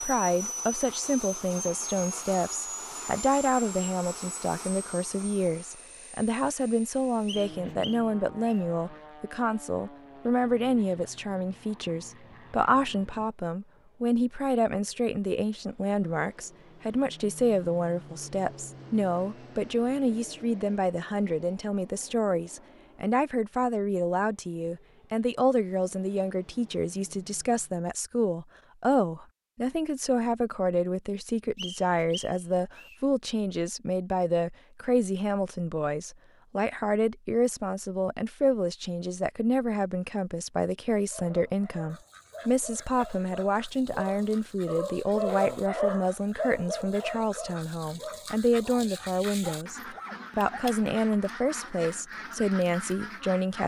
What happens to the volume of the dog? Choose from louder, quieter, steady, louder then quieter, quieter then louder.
louder then quieter.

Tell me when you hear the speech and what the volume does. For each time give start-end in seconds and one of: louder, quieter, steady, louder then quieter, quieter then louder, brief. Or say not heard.
0.0-53.6 steady.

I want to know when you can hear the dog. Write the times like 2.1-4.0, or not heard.
41.1-50.8.